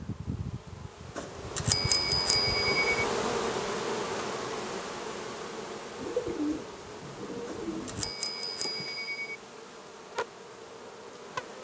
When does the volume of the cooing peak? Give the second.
6 s.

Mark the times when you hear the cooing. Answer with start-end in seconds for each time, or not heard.
6.0-8.2.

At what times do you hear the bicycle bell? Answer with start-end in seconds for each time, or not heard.
1.1-3.0, 7.5-9.3.